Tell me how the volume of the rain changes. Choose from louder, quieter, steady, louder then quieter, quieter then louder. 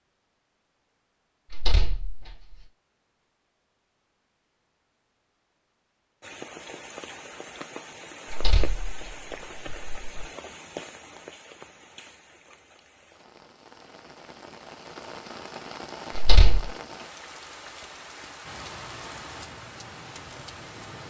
quieter then louder.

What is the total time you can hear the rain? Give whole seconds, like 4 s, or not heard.
15 s.